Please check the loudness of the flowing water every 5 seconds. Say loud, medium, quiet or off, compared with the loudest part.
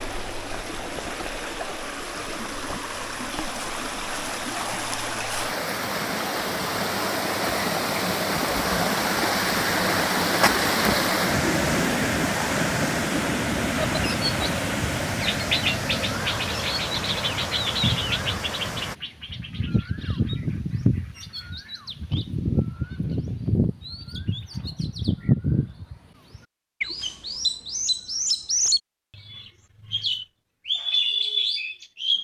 medium, loud, loud, medium, off, off, off.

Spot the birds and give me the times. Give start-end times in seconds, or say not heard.
13.8-32.1.